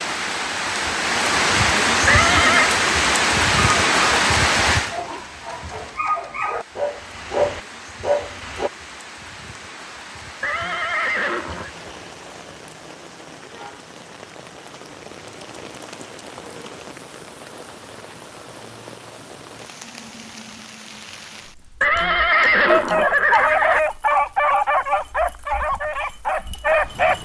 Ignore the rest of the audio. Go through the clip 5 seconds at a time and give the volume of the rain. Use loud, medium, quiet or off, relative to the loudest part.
loud, quiet, quiet, quiet, quiet, quiet.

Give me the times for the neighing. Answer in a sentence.
The neighing can be heard from 2.0 to 2.7 s, from 10.4 to 11.7 s and from 21.8 to 23.8 s.